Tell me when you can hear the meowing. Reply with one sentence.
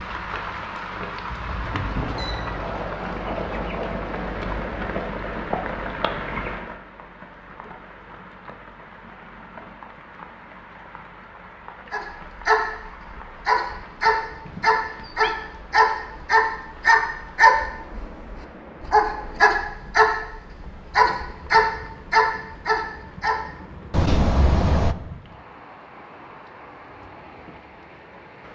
The meowing can be heard from 1.3 to 2.6 s, from 14.4 to 15.3 s and from 23.9 to 24.9 s.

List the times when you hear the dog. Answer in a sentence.
The dog can be heard from 11.9 to 23.4 s.